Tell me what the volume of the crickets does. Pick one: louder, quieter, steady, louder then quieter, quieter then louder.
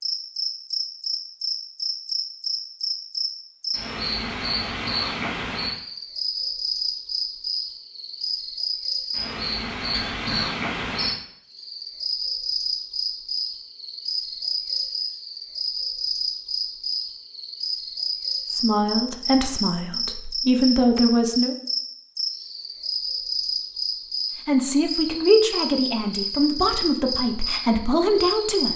steady.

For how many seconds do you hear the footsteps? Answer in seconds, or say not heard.
not heard.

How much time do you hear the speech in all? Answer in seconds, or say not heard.
7 s.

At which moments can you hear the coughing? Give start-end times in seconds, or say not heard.
9.9-10.6.